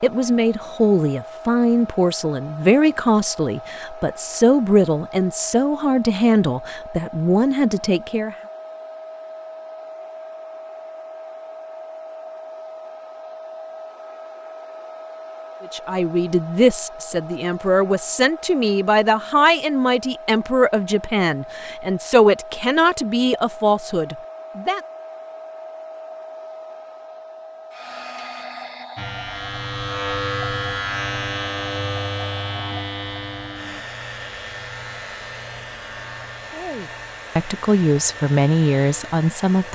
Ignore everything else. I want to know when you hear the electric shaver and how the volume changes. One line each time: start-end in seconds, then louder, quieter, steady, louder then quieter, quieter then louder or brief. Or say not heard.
28.9-39.6 quieter.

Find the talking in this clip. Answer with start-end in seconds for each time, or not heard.
0.0-8.3, 15.6-24.8, 36.5-39.6.